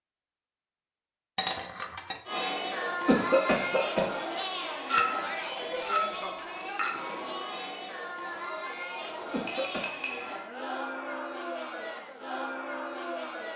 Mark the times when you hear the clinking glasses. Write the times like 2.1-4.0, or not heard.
1.4-2.2, 4.8-7.0, 9.4-10.3.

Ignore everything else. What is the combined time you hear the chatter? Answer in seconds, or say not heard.
11 s.